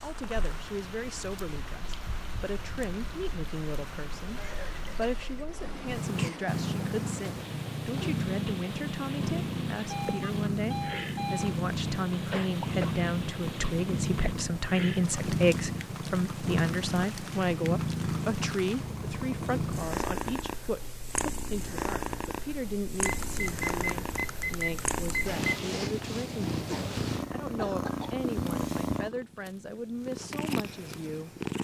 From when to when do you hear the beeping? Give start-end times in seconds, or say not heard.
9.8-11.6, 23.0-25.4.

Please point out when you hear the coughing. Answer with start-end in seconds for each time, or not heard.
4.3-6.4, 12.3-13.1, 26.6-28.2.